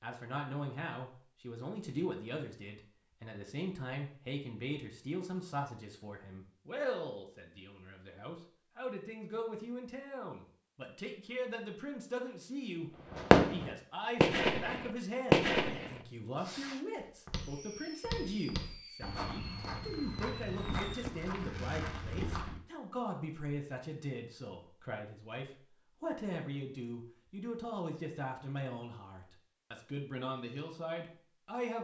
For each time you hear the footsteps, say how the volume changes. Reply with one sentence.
You can hear the footsteps from 17.0 to 22.6 s, at a steady volume.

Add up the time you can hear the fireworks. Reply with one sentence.
You can hear the fireworks for 9 seconds altogether.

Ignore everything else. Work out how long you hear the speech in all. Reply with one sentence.
The speech can be heard for 32 seconds in total.